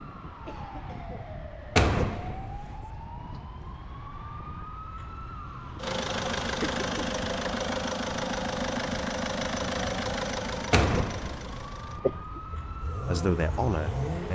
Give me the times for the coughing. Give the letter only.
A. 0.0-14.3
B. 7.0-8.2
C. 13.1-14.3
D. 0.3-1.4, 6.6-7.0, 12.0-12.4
D.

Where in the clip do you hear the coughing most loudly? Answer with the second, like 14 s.
12 s.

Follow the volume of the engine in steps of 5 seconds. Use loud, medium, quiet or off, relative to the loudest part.
off, loud, medium.